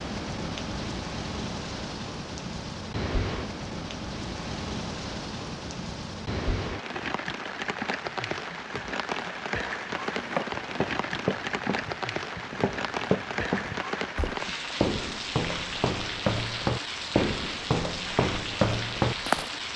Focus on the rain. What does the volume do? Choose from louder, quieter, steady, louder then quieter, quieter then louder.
steady.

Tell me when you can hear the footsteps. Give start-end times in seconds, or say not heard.
9.8-19.5.